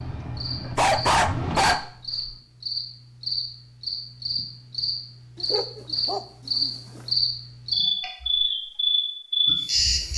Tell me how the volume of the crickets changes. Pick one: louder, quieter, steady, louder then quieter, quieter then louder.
louder.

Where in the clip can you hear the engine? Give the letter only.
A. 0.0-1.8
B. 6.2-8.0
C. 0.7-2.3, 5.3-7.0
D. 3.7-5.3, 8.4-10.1
A.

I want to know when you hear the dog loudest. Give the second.
1 s.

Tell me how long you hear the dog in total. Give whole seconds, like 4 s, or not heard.
3 s.